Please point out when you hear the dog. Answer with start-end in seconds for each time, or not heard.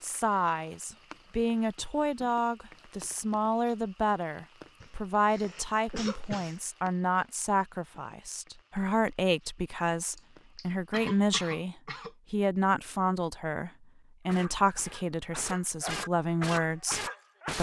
14.2-17.5.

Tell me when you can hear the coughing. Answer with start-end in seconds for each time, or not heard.
4.8-6.6, 10.2-12.2.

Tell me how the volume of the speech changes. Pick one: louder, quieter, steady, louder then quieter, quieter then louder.
steady.